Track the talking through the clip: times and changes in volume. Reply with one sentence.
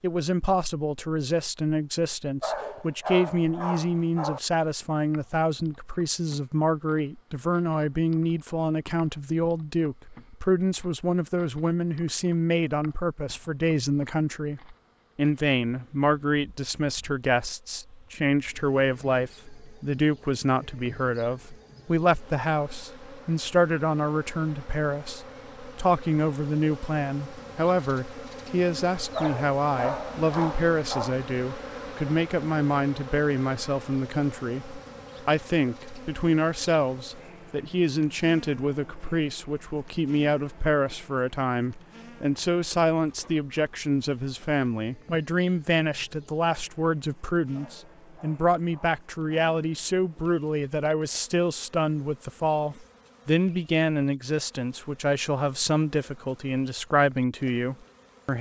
The talking can be heard from 0.0 to 58.3 s, at a steady volume.